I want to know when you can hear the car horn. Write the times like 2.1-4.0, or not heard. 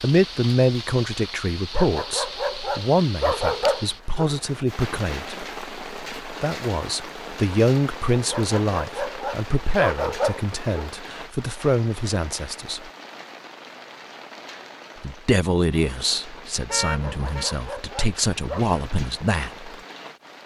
16.6-17.5.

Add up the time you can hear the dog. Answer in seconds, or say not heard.
7 s.